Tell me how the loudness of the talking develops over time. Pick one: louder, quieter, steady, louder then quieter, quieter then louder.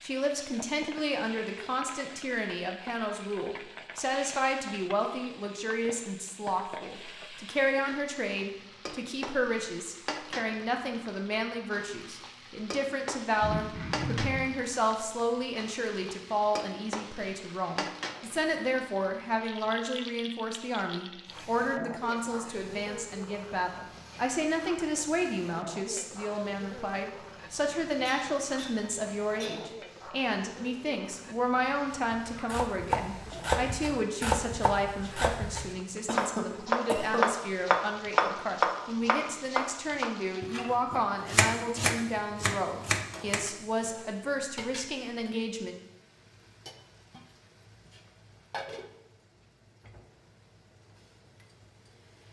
steady.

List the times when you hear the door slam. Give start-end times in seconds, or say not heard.
not heard.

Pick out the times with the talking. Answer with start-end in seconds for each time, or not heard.
0.0-45.8.